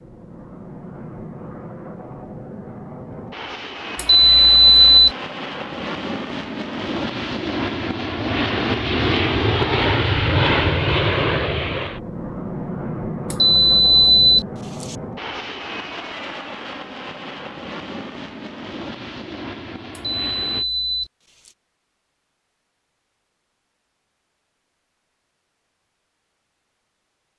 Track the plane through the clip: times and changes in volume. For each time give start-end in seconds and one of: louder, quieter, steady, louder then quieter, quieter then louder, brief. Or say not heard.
0.0-20.6 louder then quieter.